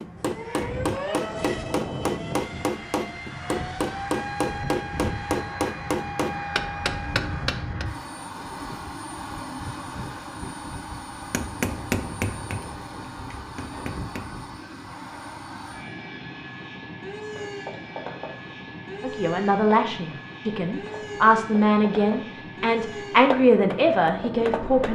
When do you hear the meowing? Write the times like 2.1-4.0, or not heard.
not heard.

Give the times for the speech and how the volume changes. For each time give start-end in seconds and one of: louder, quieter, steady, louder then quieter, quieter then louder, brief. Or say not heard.
19.0-24.9 steady.